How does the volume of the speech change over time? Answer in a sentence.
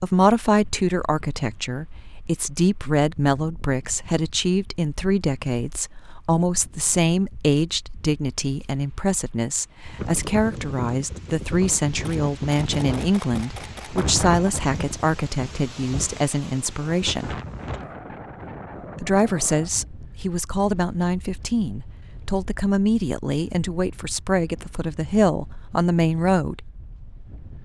The volume of the speech stays about the same.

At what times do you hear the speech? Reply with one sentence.
You can hear the speech from 0.0 to 17.4 s and from 18.9 to 26.6 s.